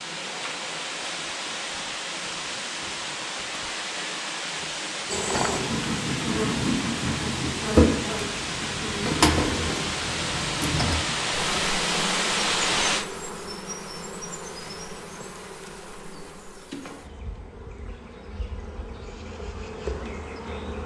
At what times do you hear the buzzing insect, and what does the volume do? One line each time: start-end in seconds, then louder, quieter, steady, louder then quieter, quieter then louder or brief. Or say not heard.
5.1-20.8 quieter.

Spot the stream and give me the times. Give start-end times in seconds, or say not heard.
0.0-13.1.